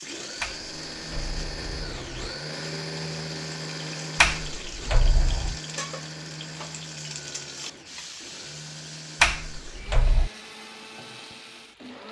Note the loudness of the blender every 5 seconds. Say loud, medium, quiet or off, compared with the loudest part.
loud, medium, medium.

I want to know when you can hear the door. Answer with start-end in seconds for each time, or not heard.
0.4-2.4, 4.2-5.6, 9.2-10.3.